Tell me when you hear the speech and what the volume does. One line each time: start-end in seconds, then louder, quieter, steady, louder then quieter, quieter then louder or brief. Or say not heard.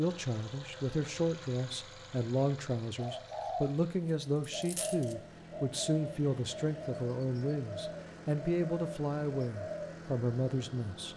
0.0-11.1 steady.